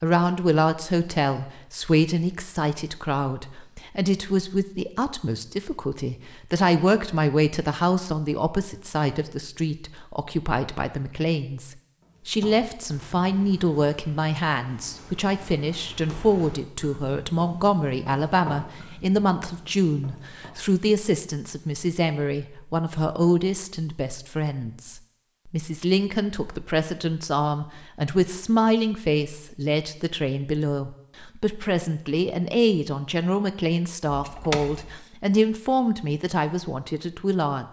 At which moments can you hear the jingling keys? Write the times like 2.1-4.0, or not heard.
34.0-35.0.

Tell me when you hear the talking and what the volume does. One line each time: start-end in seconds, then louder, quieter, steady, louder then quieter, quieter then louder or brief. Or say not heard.
0.0-37.6 steady.